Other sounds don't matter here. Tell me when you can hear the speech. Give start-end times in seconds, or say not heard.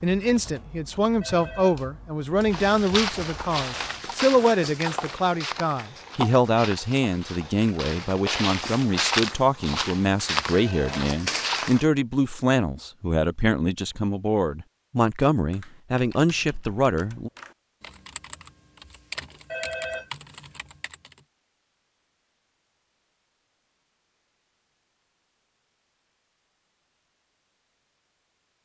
0.0-17.3.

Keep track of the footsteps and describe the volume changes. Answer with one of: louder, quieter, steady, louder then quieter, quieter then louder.
quieter then louder.